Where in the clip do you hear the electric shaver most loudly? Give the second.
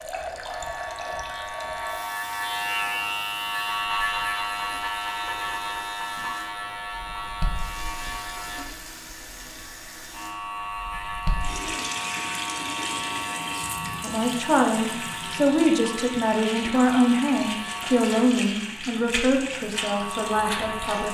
4 s.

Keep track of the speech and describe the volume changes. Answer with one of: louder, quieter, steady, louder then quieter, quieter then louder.
quieter.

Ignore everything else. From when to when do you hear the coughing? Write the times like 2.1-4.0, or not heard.
not heard.